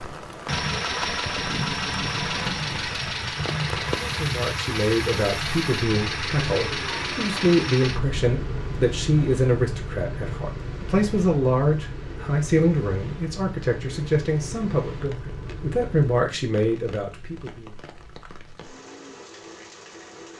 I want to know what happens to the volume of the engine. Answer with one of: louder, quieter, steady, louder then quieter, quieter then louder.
quieter.